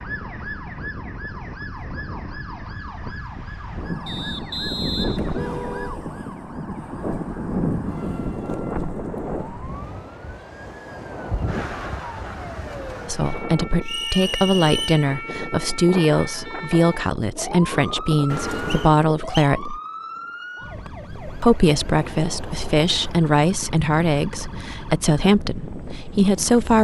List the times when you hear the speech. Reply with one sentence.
The speech can be heard from 13.1 to 19.8 s and from 21.4 to 26.8 s.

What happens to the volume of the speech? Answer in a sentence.
The volume of the speech stays about the same.